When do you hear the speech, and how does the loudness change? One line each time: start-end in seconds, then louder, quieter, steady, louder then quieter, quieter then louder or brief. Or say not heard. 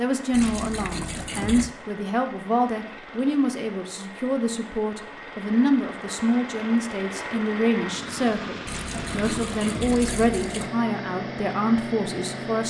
0.0-12.6 steady.